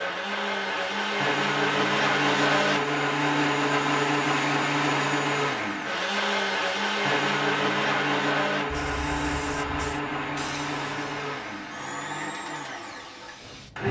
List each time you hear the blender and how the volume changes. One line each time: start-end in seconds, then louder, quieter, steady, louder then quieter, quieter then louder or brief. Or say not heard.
0.0-13.8 quieter.